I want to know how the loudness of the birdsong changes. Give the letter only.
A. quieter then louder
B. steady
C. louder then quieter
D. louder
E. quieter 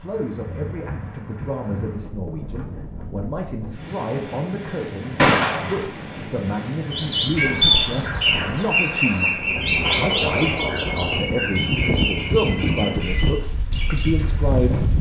E.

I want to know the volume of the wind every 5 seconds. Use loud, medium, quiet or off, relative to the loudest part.
medium, medium, loud.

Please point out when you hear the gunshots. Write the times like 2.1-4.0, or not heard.
5.2-5.8.